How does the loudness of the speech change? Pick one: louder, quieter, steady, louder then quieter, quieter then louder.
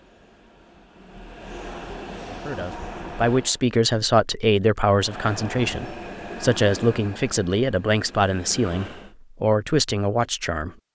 steady.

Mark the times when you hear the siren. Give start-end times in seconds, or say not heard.
not heard.